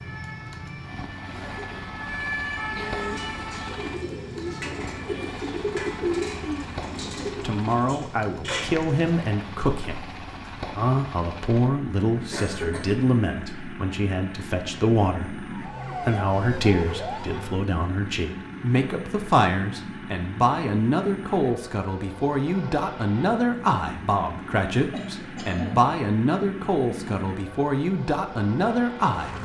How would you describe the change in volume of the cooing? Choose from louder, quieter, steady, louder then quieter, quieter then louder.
louder then quieter.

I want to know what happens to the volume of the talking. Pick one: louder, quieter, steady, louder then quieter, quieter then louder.
steady.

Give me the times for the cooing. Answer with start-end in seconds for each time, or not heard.
3.0-9.1.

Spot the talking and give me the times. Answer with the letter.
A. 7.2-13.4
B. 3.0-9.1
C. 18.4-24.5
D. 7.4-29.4
D.